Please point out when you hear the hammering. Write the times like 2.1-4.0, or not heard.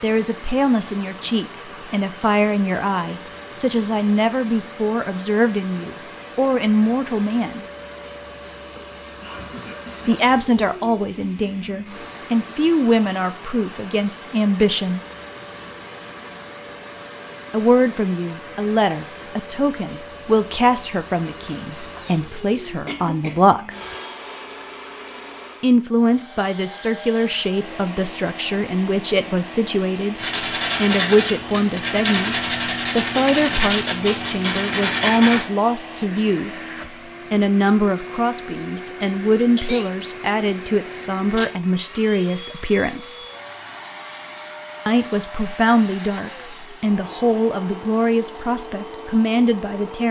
not heard.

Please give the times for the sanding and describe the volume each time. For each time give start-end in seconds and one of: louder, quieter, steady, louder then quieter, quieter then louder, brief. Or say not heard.
30.1-35.5 steady.